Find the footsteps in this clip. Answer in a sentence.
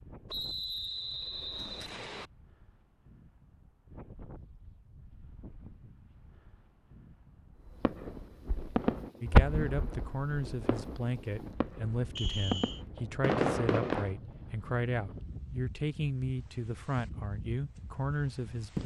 The footsteps can't be heard in this clip.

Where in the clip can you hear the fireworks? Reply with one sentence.
You can hear the fireworks from 7.7 to 14.2 s.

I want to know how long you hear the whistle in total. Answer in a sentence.
The whistle can be heard for 3 seconds in total.